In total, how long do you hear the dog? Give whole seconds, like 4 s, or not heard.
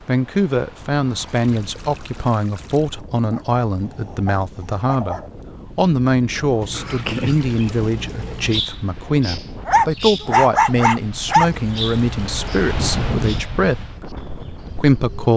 4 s.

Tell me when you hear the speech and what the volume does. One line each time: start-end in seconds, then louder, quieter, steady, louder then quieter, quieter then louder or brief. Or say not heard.
0.0-15.3 steady.